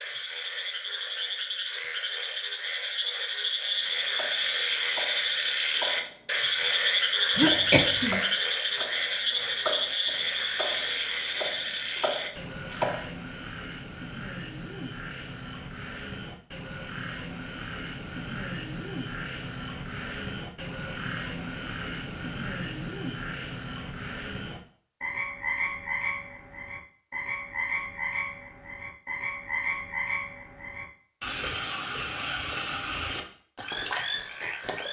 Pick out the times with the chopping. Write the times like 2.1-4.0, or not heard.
3.9-13.1.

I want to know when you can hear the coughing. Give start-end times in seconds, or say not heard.
7.3-8.2.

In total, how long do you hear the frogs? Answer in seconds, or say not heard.
35 s.